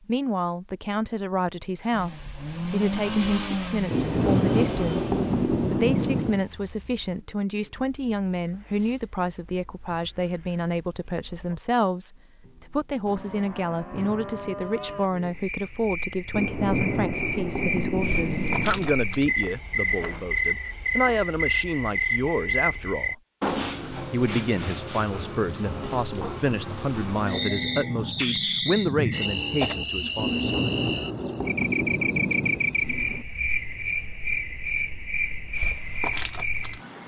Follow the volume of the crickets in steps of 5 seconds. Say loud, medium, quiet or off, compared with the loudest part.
quiet, quiet, quiet, loud, loud, loud, loud, loud.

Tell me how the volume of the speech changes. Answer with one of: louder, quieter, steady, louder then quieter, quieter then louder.
steady.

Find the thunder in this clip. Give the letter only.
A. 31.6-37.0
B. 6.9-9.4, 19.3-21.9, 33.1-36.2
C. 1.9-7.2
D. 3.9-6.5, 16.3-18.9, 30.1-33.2
D.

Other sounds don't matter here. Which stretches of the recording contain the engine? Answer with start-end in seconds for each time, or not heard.
1.9-7.2.